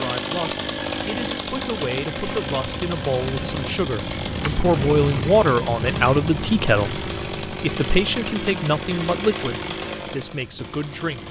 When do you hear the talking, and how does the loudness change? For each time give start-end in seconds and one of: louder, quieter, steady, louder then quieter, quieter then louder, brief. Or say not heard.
0.0-11.2 louder then quieter.